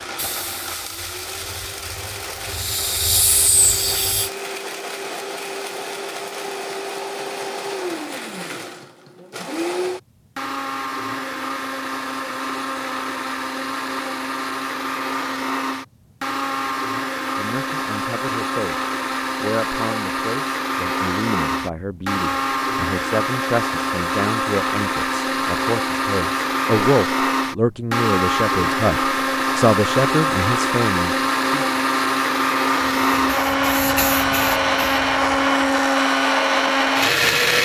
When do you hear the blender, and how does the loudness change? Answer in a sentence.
The blender can be heard from 0.0 to 37.6 s, getting louder.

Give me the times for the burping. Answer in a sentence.
The burping can't be heard in this clip.